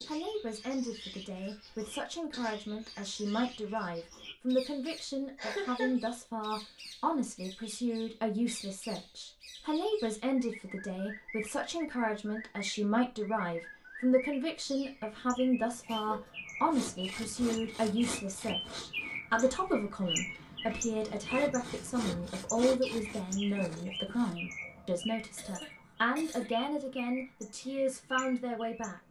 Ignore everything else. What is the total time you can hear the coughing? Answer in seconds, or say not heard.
3 s.